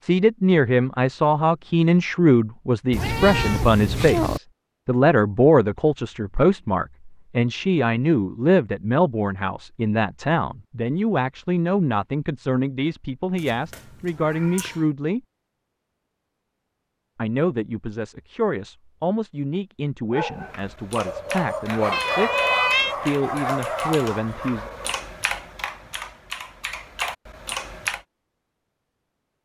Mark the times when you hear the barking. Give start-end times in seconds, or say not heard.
20.1-25.0.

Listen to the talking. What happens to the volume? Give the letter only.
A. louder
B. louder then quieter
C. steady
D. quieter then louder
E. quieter
E.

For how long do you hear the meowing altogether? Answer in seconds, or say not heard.
4 s.